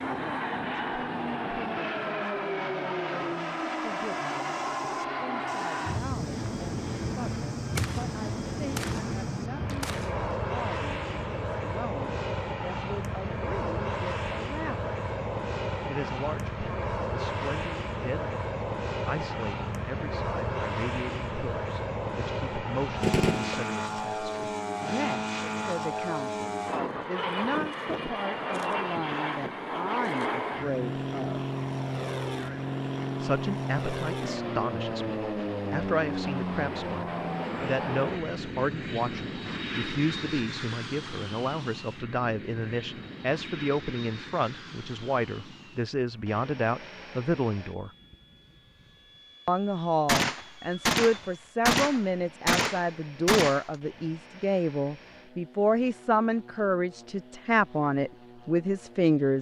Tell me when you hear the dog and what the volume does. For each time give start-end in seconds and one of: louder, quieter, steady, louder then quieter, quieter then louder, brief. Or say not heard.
not heard.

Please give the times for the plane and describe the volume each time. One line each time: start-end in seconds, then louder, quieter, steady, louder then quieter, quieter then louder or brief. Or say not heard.
0.0-59.3 quieter.